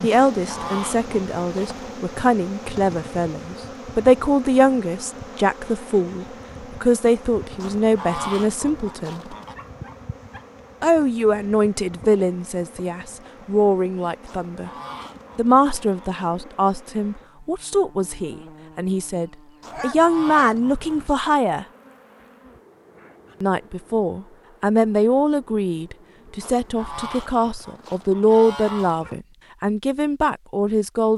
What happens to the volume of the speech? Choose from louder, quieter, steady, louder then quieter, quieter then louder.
steady.